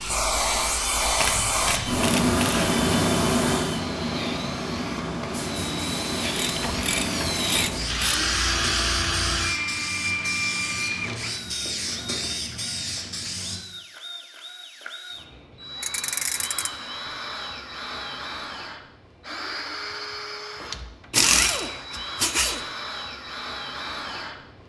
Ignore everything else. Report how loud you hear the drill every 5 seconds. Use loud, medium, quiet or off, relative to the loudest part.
medium, loud, medium, medium, medium.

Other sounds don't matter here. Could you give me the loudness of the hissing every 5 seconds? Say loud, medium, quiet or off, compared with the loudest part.
loud, medium, medium, off, off.